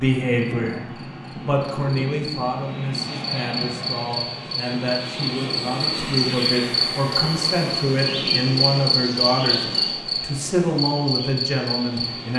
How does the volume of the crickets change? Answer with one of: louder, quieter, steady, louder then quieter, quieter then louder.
louder.